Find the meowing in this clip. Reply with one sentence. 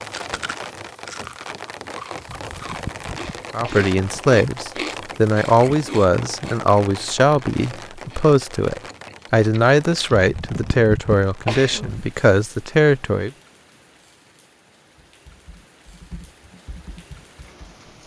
You can't hear the meowing here.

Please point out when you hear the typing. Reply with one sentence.
The typing can be heard from 14.9 to 17.8 s.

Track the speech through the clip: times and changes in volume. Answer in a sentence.
You can hear the speech from 3.5 to 13.3 s, at a steady volume.